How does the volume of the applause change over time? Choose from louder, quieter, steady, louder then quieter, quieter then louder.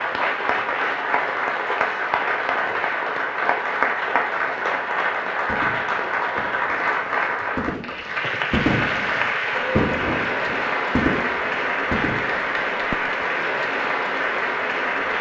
steady.